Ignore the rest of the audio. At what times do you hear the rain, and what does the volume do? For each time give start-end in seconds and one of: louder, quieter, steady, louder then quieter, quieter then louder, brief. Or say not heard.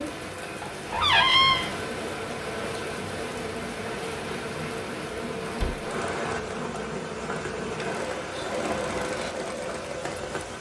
0.0-10.5 steady.